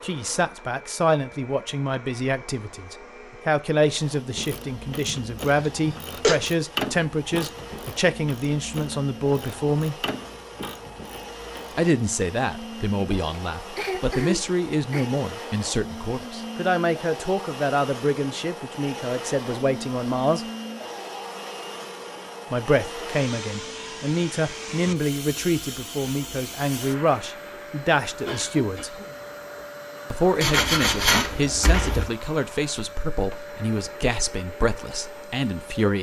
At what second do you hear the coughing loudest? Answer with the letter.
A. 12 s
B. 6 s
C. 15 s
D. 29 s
B.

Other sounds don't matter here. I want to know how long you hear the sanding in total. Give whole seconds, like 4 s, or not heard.
2 s.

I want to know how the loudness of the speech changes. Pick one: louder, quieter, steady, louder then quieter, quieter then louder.
steady.